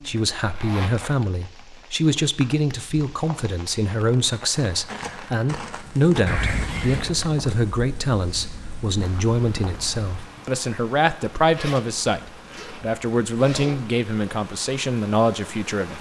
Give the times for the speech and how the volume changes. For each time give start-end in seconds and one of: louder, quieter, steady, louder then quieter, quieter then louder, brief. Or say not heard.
0.0-15.9 steady.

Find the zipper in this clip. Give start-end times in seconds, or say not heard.
0.1-1.1, 6.2-7.1, 11.3-13.8.